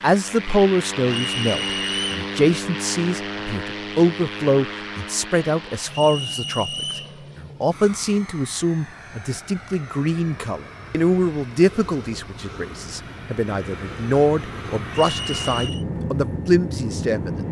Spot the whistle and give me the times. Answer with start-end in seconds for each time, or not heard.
1.1-2.3, 5.9-7.2, 14.9-15.8.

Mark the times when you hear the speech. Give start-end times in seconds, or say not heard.
0.0-6.7, 7.4-17.3.